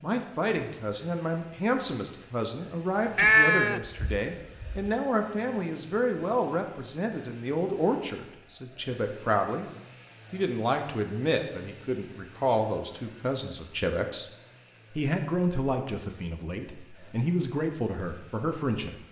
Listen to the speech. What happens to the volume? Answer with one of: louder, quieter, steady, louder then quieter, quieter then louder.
steady.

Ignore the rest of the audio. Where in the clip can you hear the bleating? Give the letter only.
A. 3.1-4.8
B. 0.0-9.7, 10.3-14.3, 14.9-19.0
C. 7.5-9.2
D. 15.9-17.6
A.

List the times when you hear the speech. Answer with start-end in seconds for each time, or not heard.
0.0-9.7, 10.3-14.3, 14.9-19.0.